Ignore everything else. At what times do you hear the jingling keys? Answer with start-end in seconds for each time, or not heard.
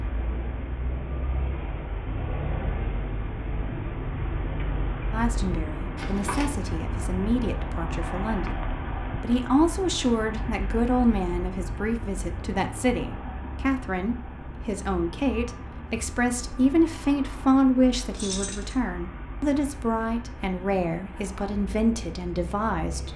6.0-6.5, 18.1-18.8.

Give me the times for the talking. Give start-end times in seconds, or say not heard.
5.1-23.1.